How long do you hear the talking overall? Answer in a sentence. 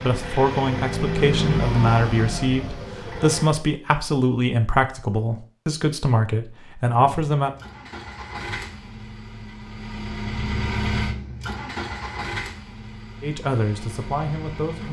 The talking can be heard for 9 seconds in total.